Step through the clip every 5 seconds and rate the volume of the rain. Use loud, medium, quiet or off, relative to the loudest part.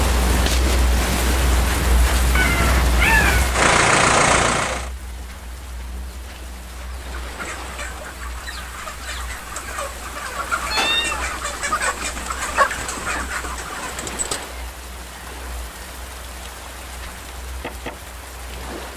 loud, quiet, medium, medium.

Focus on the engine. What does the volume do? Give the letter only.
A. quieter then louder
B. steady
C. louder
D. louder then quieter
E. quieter
C.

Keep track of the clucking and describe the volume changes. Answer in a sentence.
The loudness of the clucking goes up, then down.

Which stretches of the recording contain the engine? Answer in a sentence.
The engine can be heard from 0.1 to 4.9 s.